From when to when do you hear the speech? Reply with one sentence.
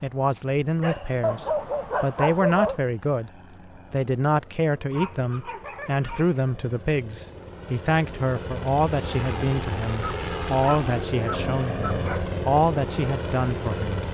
You can hear the speech from 0.0 to 3.3 s and from 3.9 to 14.0 s.